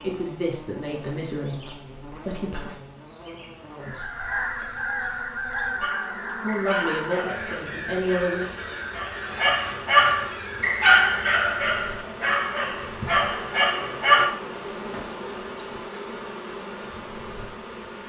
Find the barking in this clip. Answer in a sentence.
The barking can be heard from 5.8 to 14.3 s.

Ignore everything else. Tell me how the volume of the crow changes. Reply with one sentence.
The loudness of the crow goes down.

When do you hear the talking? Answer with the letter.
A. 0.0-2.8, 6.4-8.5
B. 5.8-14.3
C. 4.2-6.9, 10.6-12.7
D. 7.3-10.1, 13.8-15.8
A.